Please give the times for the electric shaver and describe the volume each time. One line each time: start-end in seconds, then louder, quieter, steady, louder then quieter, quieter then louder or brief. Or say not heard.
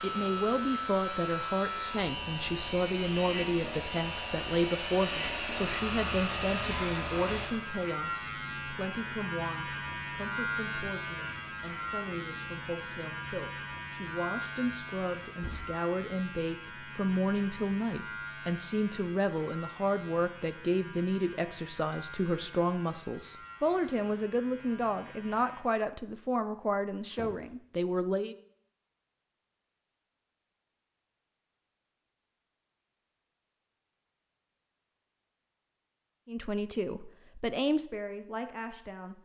0.0-25.6 quieter.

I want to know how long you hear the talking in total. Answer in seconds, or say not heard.
31 s.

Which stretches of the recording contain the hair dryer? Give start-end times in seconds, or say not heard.
0.0-7.5.